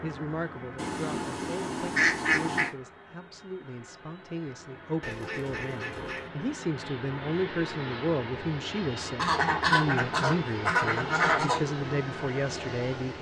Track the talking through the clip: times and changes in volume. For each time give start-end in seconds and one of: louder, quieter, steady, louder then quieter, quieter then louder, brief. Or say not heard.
0.0-13.1 louder.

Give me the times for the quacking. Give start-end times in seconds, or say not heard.
0.8-2.7, 5.0-6.3, 9.2-11.6.